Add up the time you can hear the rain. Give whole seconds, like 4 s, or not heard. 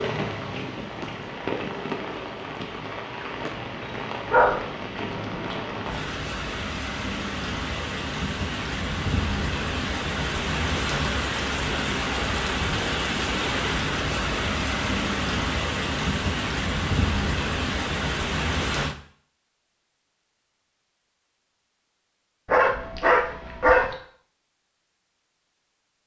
19 s.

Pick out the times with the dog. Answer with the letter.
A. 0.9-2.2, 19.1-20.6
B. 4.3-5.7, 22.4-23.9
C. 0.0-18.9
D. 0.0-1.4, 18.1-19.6
B.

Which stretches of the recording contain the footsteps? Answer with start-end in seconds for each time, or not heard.
not heard.